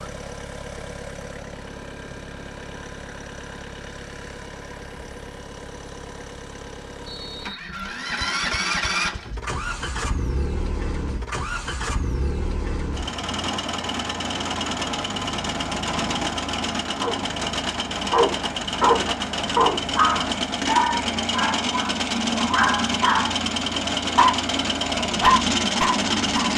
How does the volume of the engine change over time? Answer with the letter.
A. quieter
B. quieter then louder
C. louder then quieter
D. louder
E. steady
D.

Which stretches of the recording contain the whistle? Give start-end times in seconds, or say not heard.
7.0-8.1.